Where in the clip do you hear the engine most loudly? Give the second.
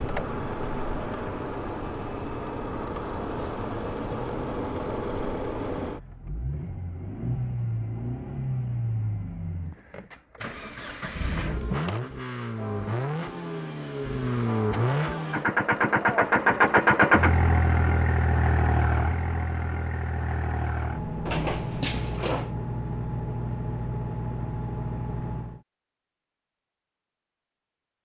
17 s.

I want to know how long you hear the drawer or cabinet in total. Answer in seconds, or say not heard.
2 s.